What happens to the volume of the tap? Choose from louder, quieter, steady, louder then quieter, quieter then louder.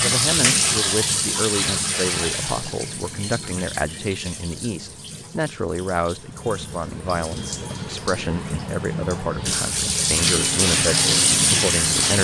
quieter then louder.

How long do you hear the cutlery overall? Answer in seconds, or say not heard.
not heard.